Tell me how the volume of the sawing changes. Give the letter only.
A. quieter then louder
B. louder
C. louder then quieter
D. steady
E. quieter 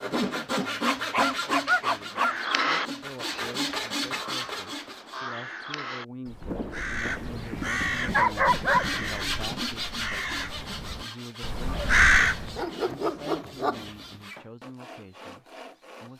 E.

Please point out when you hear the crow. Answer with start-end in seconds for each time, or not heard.
2.1-12.7.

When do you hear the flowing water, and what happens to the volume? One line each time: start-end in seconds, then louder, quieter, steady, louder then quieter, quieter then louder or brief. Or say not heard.
not heard.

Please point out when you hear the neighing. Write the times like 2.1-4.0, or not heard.
not heard.